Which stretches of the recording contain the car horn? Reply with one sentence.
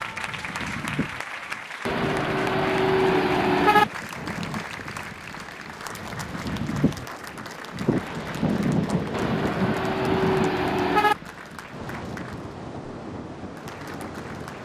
You can hear the car horn from 1.9 to 3.9 s and from 9.1 to 11.2 s.